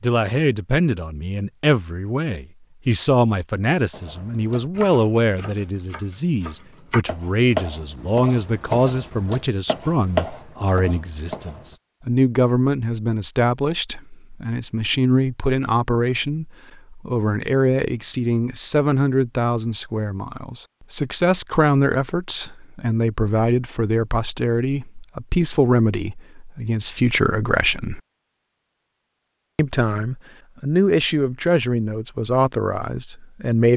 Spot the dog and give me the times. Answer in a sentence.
You can't hear the dog here.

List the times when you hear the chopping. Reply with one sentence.
You can hear the chopping from 3.9 to 11.8 s.